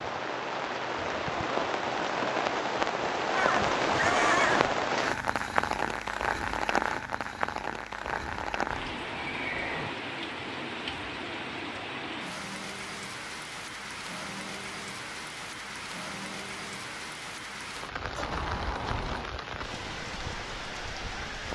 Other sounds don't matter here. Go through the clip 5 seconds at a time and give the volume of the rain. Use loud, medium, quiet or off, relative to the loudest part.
loud, loud, medium, medium, medium.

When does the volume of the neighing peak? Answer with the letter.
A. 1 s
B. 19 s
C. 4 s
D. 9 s
C.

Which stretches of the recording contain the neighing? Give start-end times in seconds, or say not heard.
3.3-4.8, 8.0-9.9, 18.2-19.3.